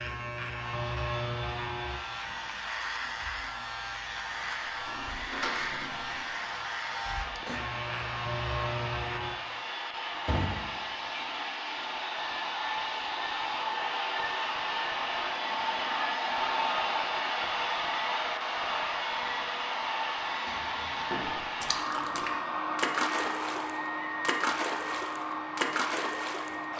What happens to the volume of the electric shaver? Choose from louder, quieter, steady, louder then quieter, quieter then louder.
steady.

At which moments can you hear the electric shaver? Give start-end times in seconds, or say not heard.
0.0-9.4.